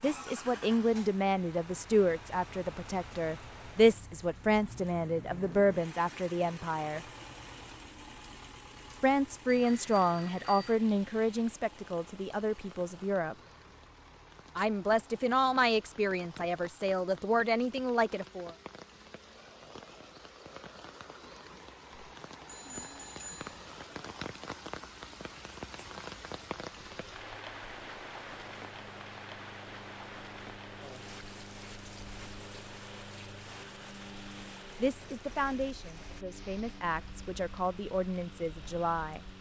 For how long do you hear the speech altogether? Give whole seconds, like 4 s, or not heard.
20 s.